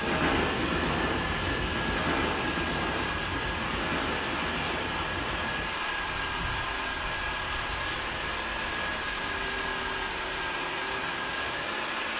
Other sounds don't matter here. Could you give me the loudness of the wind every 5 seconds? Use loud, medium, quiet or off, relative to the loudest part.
loud, quiet, quiet.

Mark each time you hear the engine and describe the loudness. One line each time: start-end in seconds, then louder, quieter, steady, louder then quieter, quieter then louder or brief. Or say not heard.
0.0-12.1 steady.